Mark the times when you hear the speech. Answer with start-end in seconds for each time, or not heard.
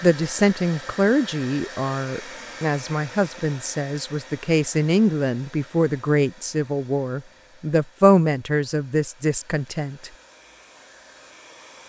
0.0-10.1.